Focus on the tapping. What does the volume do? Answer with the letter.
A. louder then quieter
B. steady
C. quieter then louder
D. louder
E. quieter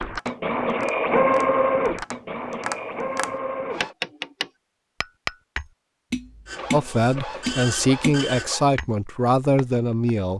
D.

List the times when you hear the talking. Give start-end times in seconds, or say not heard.
6.7-10.3.